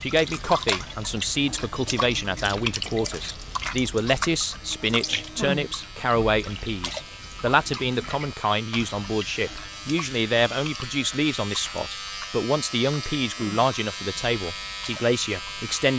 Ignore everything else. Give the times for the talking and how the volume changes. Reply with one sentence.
You can hear the talking from 0.0 to 15.9 s, at a steady volume.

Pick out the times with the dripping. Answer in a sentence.
The dripping can be heard from 0.0 to 15.9 s.